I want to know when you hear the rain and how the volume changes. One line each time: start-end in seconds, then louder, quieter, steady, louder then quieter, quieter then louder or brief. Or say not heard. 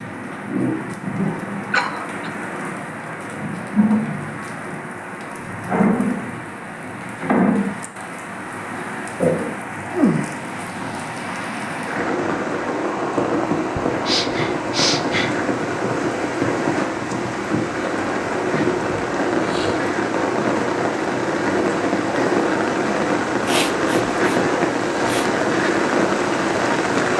0.0-27.1 louder.